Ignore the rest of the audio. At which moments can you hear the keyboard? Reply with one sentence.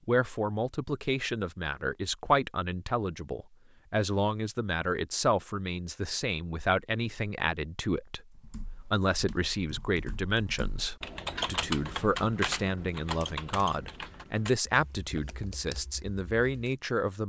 You can hear the keyboard from 8.3 to 16.8 s.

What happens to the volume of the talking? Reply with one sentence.
The loudness of the talking stays about the same.